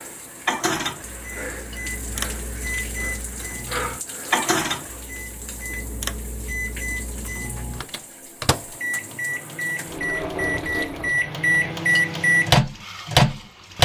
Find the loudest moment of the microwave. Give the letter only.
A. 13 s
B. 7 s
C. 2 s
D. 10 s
A.